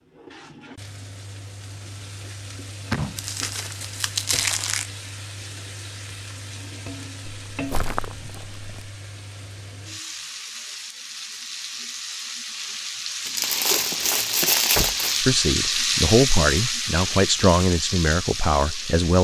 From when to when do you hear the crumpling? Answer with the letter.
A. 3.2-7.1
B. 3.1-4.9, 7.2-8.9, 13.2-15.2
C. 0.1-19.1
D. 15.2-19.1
B.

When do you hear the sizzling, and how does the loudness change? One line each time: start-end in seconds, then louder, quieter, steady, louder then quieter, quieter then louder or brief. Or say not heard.
0.1-19.1 louder.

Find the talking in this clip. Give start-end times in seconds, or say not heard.
15.2-19.1.